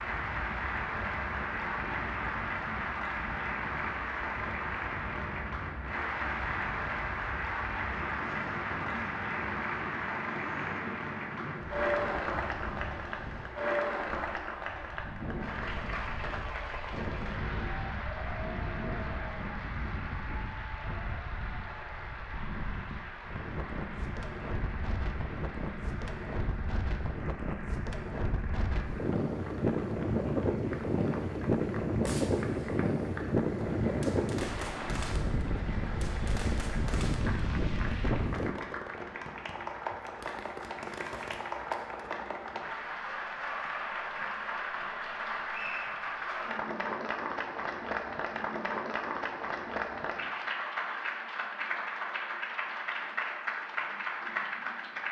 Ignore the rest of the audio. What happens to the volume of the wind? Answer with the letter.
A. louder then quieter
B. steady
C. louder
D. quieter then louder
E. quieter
C.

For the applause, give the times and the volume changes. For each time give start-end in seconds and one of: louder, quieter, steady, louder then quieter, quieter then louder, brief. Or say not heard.
0.0-55.0 quieter then louder.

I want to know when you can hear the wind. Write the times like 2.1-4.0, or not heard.
0.0-38.5.